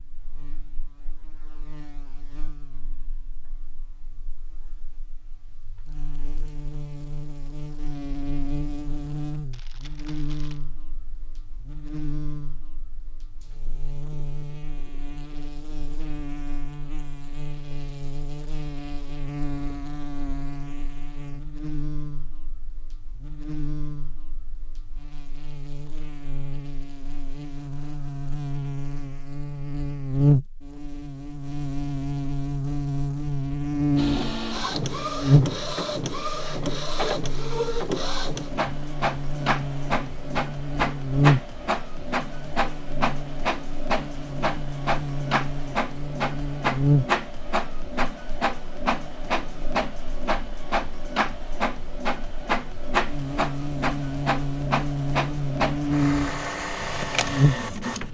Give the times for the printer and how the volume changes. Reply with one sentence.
You can hear the printer from 34.0 to 58.0 s, at a steady volume.